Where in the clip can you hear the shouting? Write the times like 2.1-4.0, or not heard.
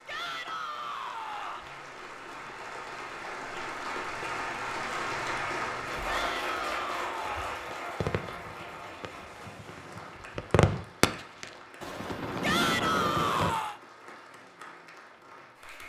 0.1-1.7, 6.0-7.7, 12.4-13.8.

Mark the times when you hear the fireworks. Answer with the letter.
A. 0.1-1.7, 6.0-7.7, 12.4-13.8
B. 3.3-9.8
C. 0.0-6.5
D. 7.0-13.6
D.